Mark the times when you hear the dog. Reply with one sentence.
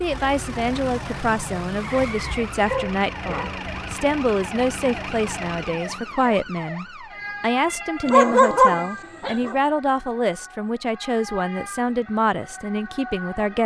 The dog can be heard from 2.5 to 4.0 s and from 8.1 to 9.6 s.